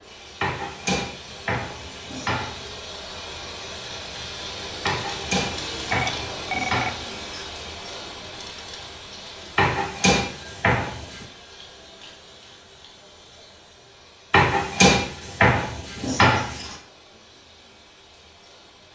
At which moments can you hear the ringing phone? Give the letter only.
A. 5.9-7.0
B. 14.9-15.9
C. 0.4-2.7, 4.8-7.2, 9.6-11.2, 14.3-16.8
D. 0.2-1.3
A.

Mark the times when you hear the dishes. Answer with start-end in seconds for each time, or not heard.
0.4-2.7, 4.8-7.2, 9.6-11.2, 14.3-16.8.